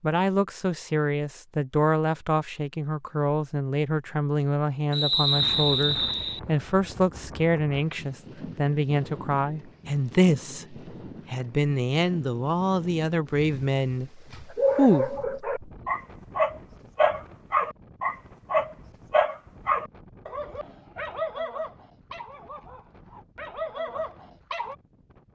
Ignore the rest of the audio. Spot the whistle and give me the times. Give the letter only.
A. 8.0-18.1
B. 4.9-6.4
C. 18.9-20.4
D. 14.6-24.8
B.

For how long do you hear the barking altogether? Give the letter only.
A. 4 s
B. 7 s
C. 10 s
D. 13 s
C.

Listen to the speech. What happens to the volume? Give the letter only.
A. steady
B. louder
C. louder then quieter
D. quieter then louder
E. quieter
A.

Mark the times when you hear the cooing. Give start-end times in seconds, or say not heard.
not heard.